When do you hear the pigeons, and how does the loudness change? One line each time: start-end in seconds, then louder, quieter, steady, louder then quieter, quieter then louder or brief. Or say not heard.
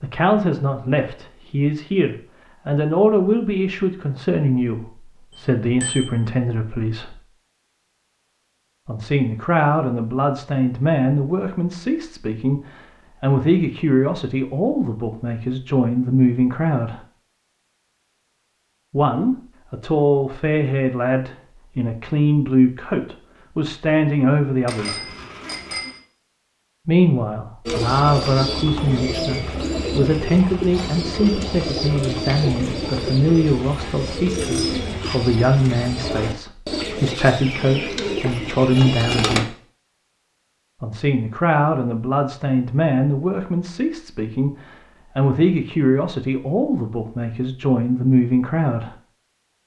27.6-39.5 steady.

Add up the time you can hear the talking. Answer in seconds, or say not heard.
42 s.